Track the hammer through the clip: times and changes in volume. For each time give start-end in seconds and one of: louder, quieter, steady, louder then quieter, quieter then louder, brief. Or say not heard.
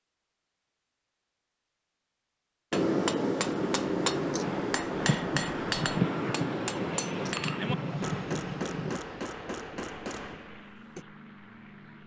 2.7-11.1 quieter.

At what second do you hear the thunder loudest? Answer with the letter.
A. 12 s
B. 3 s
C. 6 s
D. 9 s
C.